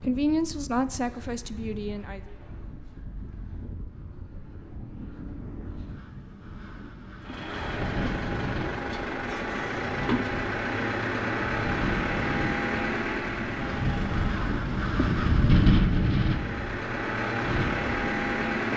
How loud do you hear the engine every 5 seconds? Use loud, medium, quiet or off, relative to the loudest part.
off, loud, loud, loud.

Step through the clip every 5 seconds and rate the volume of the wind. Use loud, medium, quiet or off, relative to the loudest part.
quiet, quiet, medium, loud.